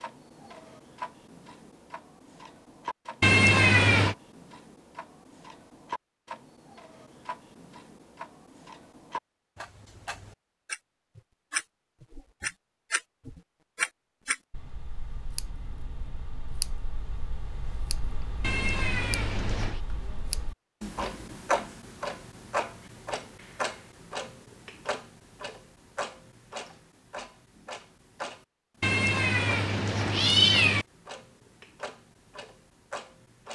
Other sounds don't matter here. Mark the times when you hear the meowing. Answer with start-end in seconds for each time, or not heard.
3.2-4.2, 18.4-19.8, 28.8-30.9.